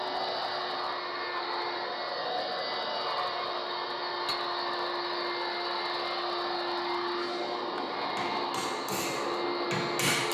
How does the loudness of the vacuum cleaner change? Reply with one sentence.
The volume of the vacuum cleaner stays about the same.